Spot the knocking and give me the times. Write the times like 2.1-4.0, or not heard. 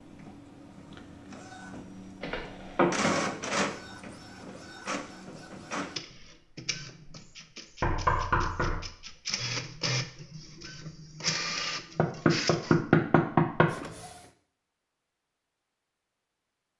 2.2-2.9, 7.8-8.8, 11.9-13.7.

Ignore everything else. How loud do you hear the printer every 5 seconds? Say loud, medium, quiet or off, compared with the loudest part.
loud, loud, loud, off.